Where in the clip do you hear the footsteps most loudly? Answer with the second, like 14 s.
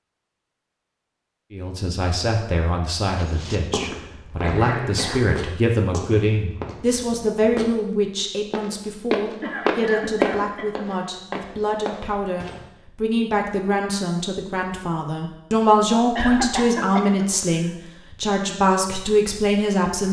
10 s.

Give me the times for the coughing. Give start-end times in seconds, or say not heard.
3.9-5.2, 9.4-11.0, 16.1-17.7.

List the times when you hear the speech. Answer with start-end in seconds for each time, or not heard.
1.5-20.0.